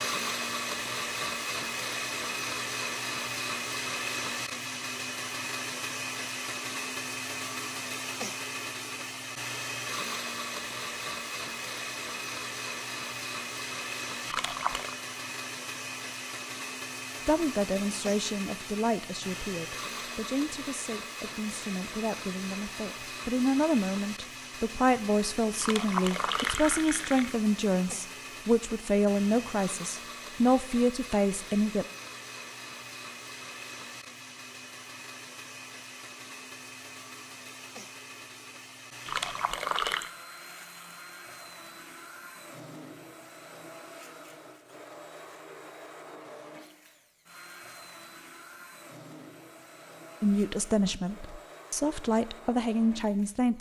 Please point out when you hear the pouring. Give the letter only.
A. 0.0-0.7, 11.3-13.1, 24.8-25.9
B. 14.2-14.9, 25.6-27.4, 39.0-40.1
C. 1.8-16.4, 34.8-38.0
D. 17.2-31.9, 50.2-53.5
B.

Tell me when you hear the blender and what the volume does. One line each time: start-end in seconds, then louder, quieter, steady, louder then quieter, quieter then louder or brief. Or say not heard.
0.0-53.5 quieter.